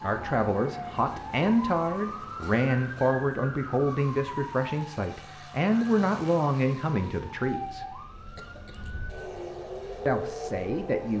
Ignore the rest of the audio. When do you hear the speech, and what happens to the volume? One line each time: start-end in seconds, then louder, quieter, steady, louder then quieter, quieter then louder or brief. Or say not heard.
0.0-8.0 steady
10.1-11.1 brief.